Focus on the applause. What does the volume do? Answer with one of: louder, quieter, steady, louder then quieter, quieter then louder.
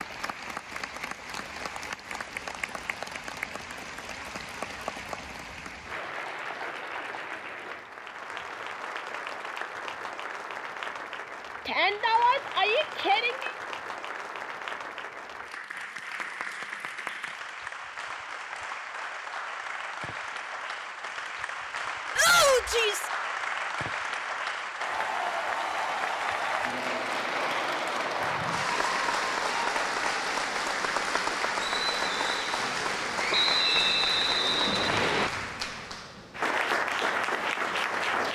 louder.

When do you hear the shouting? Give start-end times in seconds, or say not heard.
11.7-13.5, 22.1-23.1.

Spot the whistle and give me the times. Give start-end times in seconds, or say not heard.
33.3-35.3.